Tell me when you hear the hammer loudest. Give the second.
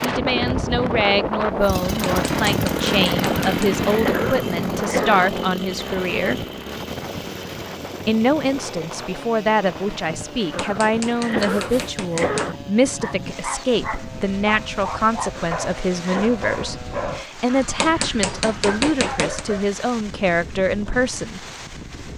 19 s.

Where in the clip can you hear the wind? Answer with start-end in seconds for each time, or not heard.
0.0-22.1.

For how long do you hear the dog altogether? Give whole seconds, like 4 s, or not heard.
7 s.